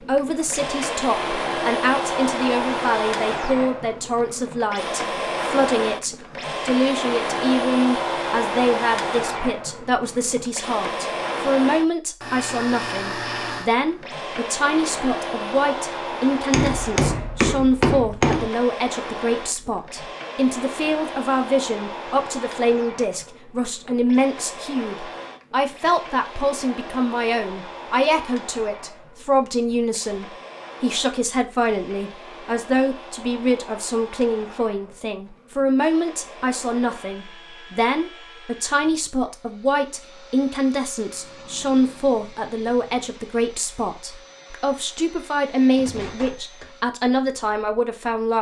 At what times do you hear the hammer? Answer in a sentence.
You can hear the hammer from 16.5 to 18.5 s.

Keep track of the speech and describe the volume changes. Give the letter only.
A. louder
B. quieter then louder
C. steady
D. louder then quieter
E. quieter
C.